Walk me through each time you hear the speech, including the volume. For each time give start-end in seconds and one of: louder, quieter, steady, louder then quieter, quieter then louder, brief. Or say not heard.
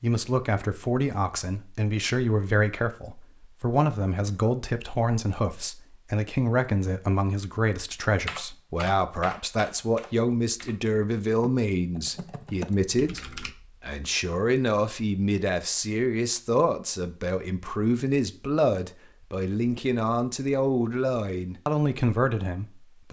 0.0-23.0 steady.